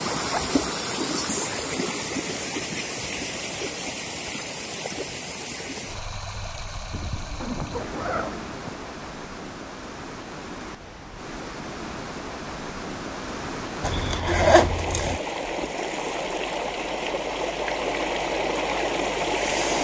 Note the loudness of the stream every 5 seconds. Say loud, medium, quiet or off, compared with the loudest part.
loud, medium, medium, loud.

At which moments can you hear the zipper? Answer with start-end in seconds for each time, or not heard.
0.1-0.6, 6.9-8.7, 13.8-15.2.